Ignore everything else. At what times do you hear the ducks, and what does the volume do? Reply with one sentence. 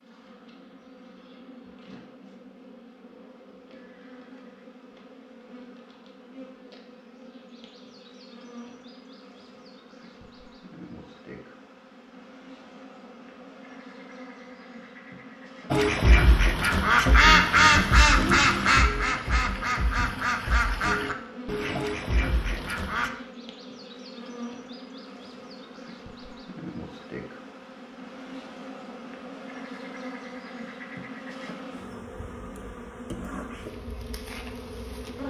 You can hear the ducks from 15.7 to 23.1 s, getting quieter.